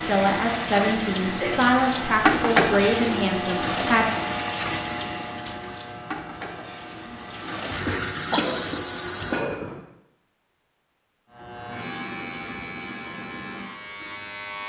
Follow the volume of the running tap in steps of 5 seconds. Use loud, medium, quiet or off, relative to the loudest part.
loud, medium, off.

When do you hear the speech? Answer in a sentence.
You can hear the speech from 0.0 to 4.1 s.